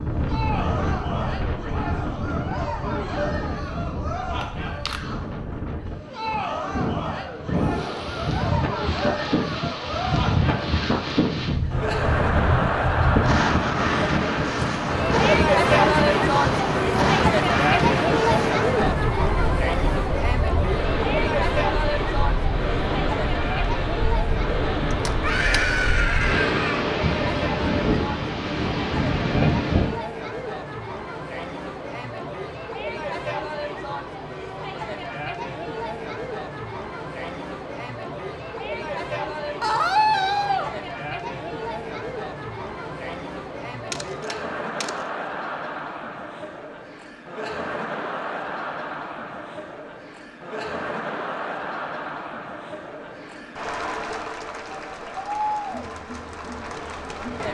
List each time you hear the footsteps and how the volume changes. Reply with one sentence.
The footsteps can't be heard in this clip.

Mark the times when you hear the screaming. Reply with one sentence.
The screaming can be heard from 7.5 to 8.3 s, from 25.2 to 26.9 s and from 39.6 to 40.7 s.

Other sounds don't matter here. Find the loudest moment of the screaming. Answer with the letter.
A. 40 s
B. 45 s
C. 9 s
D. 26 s
A.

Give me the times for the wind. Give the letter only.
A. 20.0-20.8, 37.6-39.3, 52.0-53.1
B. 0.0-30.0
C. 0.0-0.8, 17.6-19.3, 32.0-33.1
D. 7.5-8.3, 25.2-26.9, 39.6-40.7
B.